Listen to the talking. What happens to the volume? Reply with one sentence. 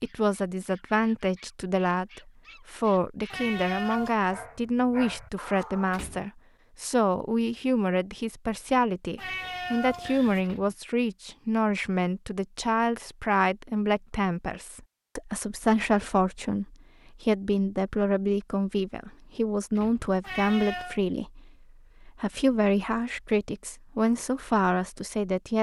The volume of the talking stays about the same.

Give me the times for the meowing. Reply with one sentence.
The meowing can be heard from 3.3 to 4.2 s, from 9.2 to 10.4 s and from 20.2 to 21.0 s.